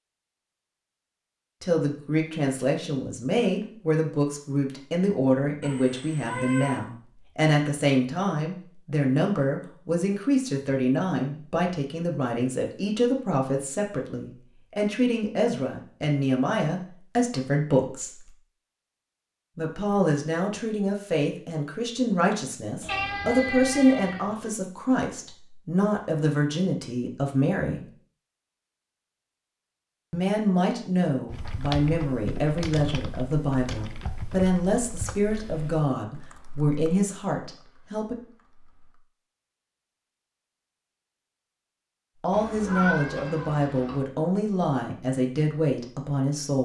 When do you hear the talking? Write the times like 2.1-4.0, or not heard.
1.6-18.3, 19.6-27.8, 30.1-38.1, 42.2-46.6.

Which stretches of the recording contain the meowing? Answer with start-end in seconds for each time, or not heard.
5.6-6.8, 22.8-24.6, 42.3-44.0.